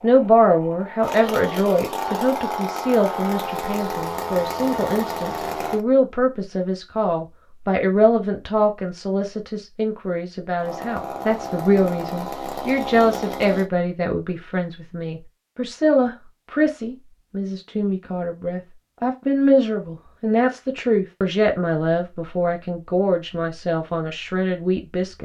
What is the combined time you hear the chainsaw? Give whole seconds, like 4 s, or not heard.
9 s.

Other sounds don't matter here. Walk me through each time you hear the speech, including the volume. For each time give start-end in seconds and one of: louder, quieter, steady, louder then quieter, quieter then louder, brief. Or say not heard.
0.0-25.1 steady.